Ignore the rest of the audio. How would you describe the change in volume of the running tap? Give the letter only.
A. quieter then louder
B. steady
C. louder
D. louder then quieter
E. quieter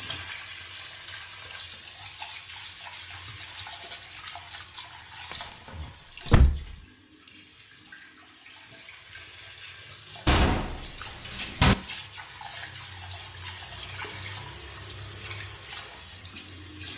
A.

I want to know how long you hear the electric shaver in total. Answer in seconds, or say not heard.
not heard.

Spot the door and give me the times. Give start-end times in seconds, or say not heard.
5.3-6.8, 10.2-11.8.